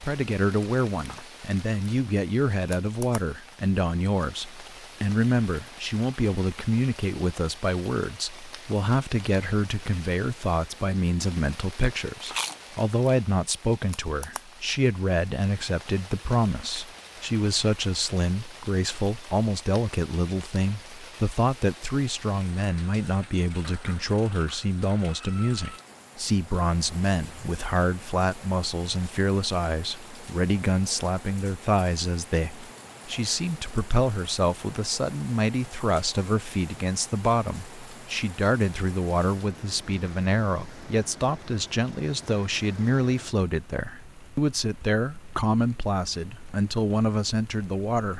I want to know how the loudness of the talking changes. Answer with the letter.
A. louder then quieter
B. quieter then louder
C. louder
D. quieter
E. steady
E.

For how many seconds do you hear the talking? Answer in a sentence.
You can hear the talking for 48 seconds altogether.